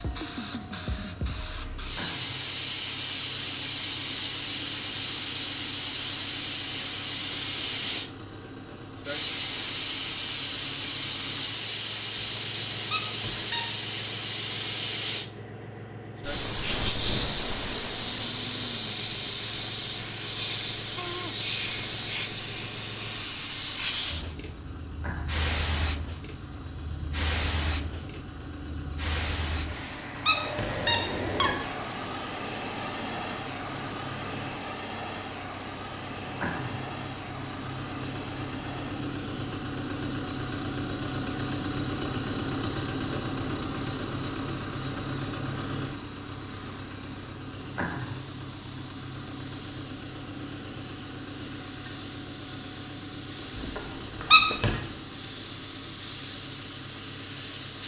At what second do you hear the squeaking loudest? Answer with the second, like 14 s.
54 s.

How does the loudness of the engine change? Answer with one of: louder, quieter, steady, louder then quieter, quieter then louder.
louder then quieter.